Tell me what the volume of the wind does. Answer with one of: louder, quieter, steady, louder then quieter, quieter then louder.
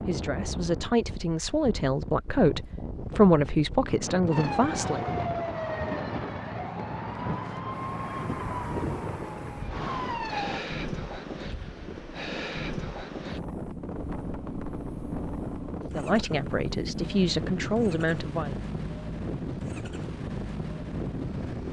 steady.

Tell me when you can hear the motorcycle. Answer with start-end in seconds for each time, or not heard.
13.8-21.6.